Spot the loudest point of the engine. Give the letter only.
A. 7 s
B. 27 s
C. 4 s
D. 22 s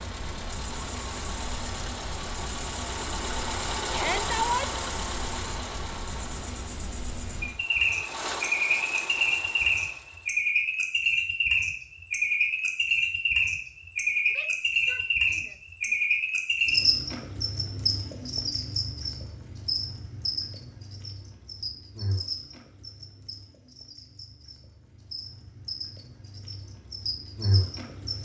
C.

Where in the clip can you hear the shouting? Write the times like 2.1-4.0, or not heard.
3.9-4.8, 14.2-15.9.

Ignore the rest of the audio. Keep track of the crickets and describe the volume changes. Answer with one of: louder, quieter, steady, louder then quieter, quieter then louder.
louder then quieter.